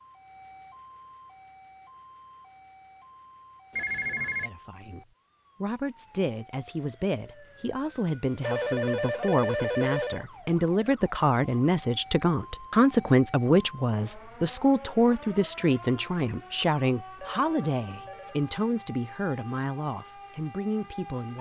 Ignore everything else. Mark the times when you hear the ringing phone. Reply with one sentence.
You can hear the ringing phone from 3.7 to 4.5 s, from 8.4 to 10.2 s and from 17.1 to 18.4 s.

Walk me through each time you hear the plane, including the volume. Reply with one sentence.
The plane can't be heard in this clip.